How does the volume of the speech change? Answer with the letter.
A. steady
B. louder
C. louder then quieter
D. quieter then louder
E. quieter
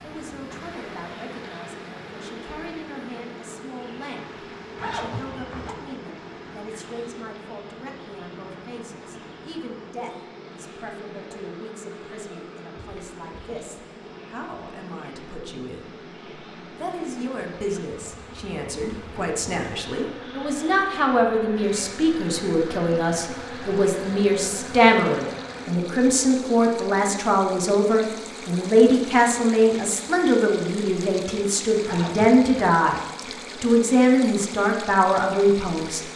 B.